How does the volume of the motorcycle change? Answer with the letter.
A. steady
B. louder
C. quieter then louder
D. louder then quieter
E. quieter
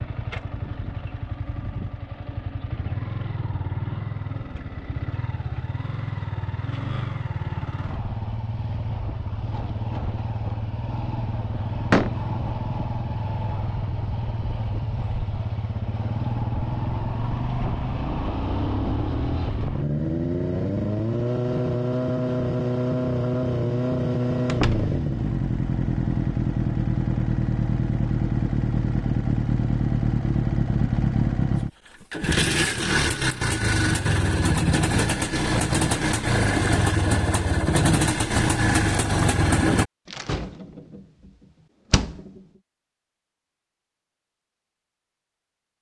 B.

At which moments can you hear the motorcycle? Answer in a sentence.
You can hear the motorcycle from 0.0 to 39.9 s.